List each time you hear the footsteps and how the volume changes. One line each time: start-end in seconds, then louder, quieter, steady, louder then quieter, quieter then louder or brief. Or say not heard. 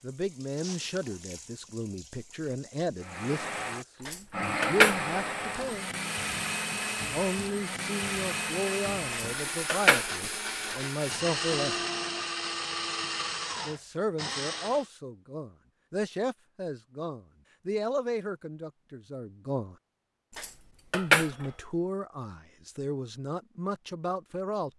not heard.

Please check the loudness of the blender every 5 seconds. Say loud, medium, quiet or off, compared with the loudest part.
loud, loud, loud, off, off.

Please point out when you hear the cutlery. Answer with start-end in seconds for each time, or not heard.
4.0-5.7, 9.1-10.1, 20.4-21.3.